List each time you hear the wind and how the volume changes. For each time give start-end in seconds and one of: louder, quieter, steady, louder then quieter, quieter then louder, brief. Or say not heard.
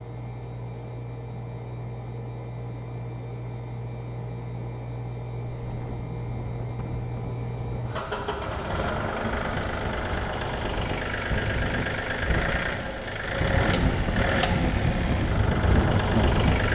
5.5-16.7 louder.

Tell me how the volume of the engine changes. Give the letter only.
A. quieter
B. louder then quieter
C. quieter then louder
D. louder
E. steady
D.